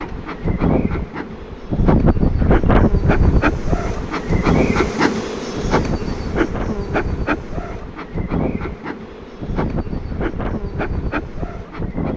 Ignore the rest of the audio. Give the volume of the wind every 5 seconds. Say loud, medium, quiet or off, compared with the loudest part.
loud, medium, medium.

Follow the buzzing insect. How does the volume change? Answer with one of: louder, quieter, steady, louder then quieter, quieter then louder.
louder then quieter.